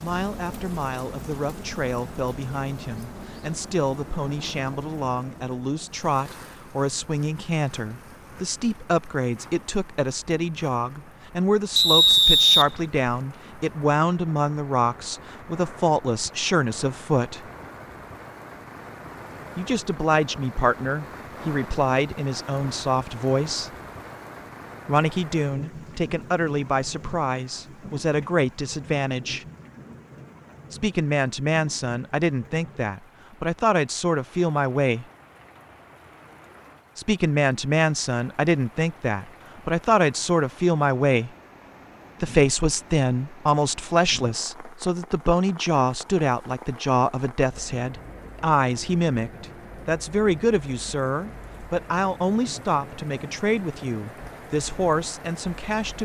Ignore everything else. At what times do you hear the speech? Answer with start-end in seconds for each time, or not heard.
0.0-17.4, 19.6-23.7, 24.9-29.4, 30.7-35.0, 37.0-41.3, 42.2-55.9.